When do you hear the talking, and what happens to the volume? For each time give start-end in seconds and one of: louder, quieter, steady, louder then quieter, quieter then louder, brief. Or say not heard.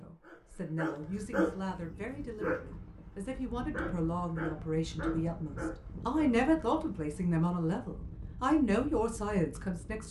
0.0-10.0 louder.